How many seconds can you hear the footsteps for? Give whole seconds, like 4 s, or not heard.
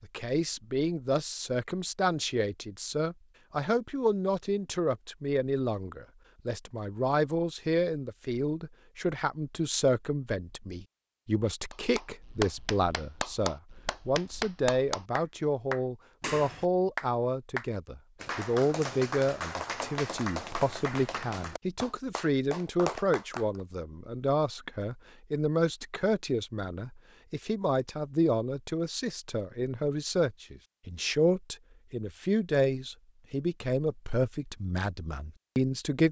not heard.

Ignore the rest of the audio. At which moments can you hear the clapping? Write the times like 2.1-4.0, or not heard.
11.7-23.6.